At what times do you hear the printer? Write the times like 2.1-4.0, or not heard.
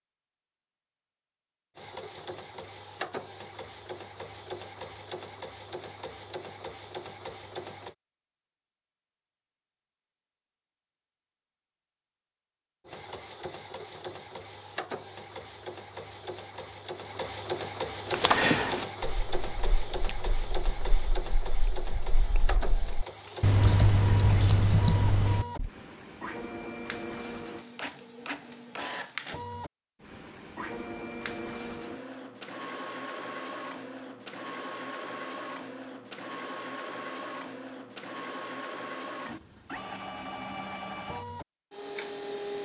1.8-8.0, 12.8-42.6.